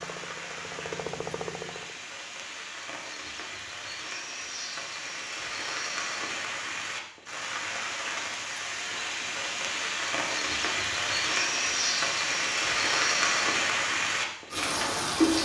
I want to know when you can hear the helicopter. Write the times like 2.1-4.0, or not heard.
0.0-2.0.